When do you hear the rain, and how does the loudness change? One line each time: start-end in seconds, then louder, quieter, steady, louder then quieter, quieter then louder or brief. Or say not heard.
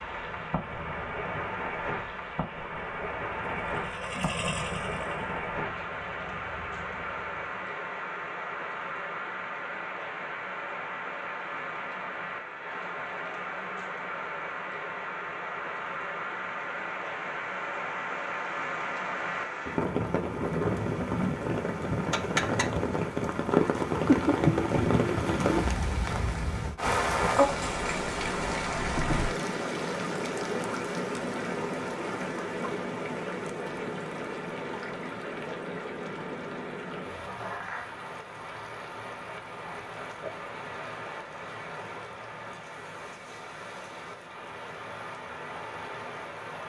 0.0-46.6 louder then quieter.